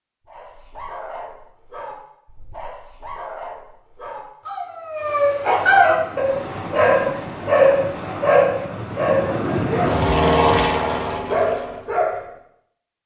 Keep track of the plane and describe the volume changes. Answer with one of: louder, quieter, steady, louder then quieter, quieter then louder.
louder.